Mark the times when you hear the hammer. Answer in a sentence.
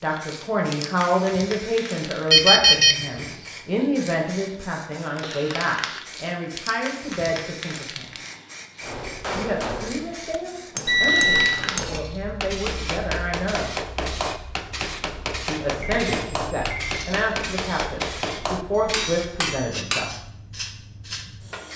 The hammer can be heard from 8.8 to 20.2 s.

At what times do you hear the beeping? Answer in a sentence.
The beeping can be heard from 2.3 to 3.0 s, from 10.8 to 11.6 s and from 15.8 to 17.0 s.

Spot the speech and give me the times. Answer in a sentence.
You can hear the speech from 0.0 to 8.1 s, from 9.3 to 13.8 s and from 15.4 to 20.1 s.